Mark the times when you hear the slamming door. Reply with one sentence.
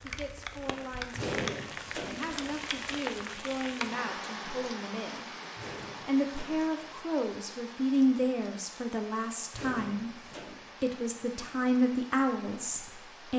You can hear the slamming door from 1.1 to 2.3 s, from 5.5 to 6.8 s and from 9.5 to 10.8 s.